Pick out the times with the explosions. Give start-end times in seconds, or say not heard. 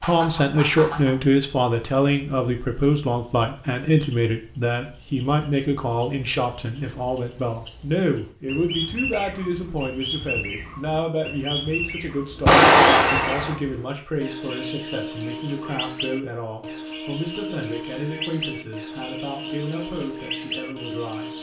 12.4-13.6.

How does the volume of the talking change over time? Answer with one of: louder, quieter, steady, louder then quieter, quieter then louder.
quieter.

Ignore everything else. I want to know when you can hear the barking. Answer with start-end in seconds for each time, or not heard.
not heard.